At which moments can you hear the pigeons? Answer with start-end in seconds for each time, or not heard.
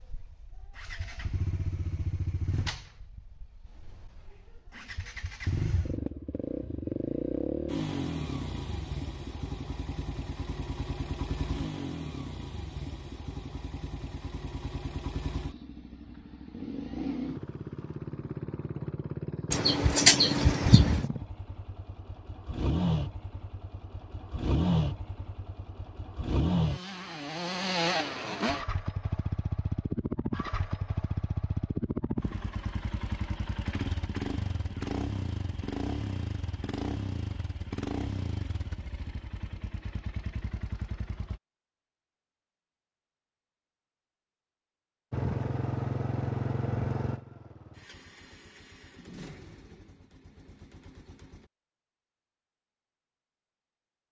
19.5-21.1.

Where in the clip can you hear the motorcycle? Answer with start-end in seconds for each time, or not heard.
0.0-41.4, 45.1-51.5.